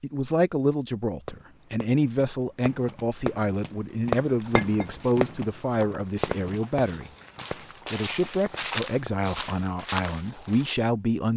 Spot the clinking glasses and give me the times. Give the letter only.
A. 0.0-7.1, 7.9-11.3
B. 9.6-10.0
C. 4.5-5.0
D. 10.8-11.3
C.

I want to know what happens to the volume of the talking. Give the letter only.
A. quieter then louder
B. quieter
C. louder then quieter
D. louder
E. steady
E.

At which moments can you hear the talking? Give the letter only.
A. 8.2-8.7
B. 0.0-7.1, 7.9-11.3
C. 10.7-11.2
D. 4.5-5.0
B.